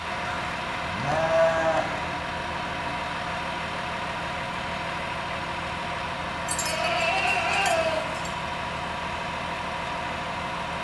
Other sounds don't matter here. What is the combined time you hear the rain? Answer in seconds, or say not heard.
not heard.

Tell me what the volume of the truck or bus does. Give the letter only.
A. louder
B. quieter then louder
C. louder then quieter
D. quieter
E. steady
E.